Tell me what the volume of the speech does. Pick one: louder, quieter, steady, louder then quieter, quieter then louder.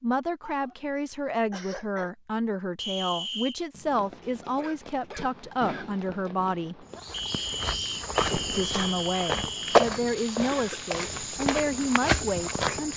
steady.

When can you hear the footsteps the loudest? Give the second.
10 s.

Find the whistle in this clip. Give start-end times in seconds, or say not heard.
2.8-3.6, 7.1-9.8.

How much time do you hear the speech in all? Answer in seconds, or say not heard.
11 s.